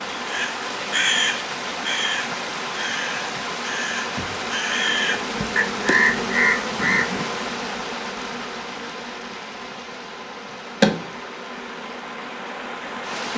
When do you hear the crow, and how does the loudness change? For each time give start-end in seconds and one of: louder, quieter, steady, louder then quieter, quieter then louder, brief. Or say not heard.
0.2-7.2 quieter then louder.